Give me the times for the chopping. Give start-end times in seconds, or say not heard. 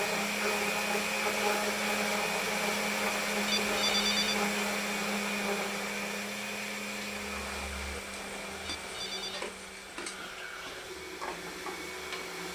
not heard.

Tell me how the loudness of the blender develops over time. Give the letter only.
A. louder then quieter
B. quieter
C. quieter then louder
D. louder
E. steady
B.